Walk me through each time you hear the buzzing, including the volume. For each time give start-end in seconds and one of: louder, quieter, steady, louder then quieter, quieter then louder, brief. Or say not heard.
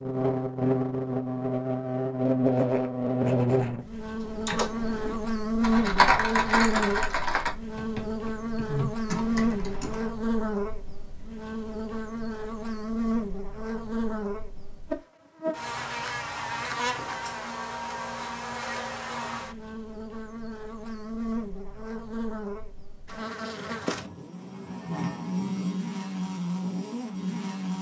0.0-27.7 quieter.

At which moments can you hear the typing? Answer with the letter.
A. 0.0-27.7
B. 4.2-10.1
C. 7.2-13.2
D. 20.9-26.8
B.